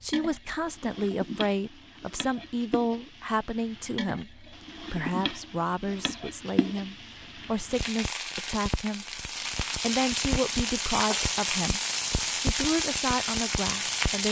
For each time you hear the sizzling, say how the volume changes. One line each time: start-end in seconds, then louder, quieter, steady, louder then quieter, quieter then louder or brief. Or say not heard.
0.0-14.2 louder.